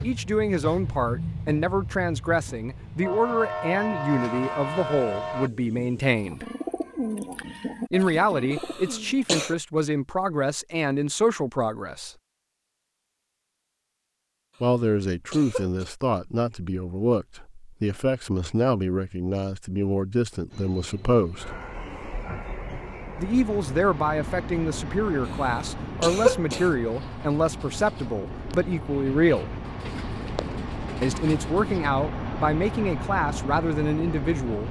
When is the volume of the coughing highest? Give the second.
26 s.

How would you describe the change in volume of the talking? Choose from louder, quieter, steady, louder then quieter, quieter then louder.
steady.